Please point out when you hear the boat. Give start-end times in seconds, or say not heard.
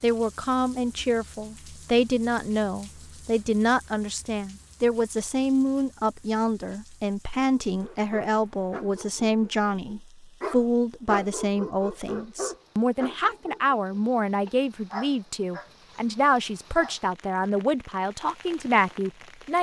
not heard.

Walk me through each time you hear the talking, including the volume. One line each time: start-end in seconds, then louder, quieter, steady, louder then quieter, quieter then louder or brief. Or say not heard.
0.0-19.5 steady.